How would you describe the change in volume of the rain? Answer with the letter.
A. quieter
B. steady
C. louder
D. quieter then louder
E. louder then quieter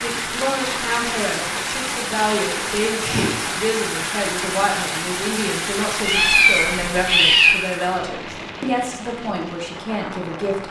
A.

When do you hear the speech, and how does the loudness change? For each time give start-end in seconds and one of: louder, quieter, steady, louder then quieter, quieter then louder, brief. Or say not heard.
0.0-10.6 steady.